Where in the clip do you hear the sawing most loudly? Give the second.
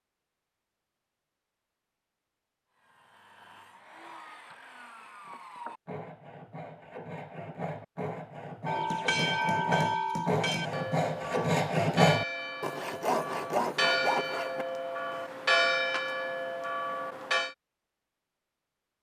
12 s.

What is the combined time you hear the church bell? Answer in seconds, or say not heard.
9 s.